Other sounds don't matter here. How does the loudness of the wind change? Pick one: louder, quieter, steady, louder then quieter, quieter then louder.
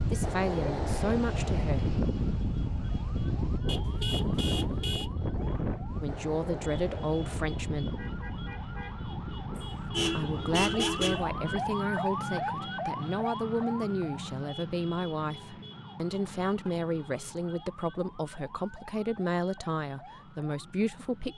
quieter.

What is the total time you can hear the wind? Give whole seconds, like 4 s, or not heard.
12 s.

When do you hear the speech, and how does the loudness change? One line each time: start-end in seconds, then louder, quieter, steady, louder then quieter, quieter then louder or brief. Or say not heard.
0.1-1.9 brief
6.0-8.1 brief
10.1-21.3 steady.